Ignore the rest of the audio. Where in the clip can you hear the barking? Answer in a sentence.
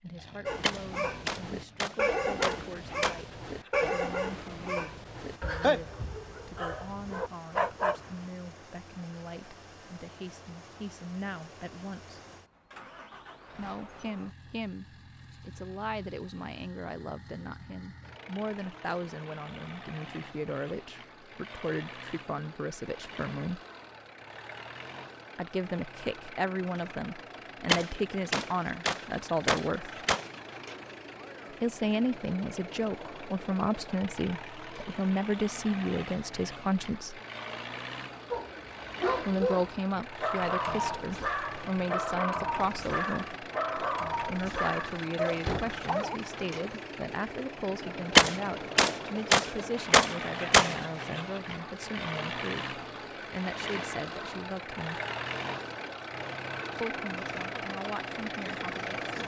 You can hear the barking from 0.5 to 8.2 s and from 38.3 to 46.2 s.